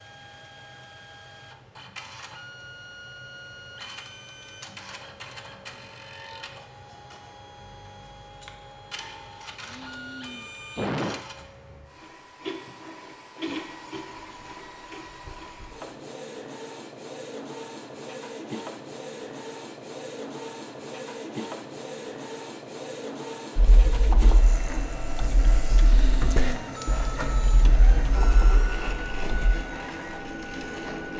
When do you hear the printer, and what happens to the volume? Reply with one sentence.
You can hear the printer from 0.0 to 31.1 s, getting louder.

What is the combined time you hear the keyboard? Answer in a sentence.
You can hear the keyboard for 6 seconds altogether.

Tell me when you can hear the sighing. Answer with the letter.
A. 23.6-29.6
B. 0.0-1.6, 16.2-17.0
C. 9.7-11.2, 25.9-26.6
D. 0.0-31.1
C.